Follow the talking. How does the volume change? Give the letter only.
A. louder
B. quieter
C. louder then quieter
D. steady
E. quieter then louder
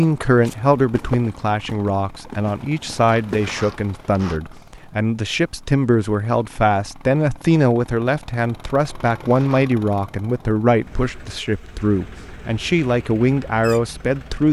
D.